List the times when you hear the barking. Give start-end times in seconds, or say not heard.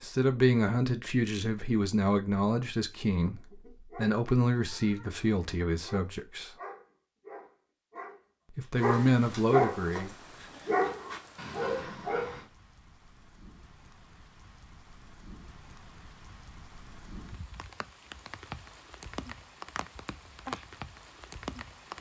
3.4-12.4.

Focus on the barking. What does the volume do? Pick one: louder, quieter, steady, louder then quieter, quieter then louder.
louder.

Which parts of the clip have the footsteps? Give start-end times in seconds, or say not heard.
not heard.